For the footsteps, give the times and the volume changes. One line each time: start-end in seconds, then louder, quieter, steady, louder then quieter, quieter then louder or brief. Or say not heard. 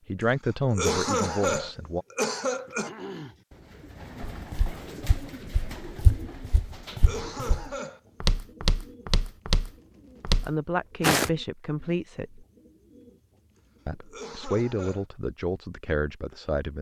4.3-11.3 louder.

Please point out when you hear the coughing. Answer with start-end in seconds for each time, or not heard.
0.6-2.9, 6.9-8.0, 13.9-15.1.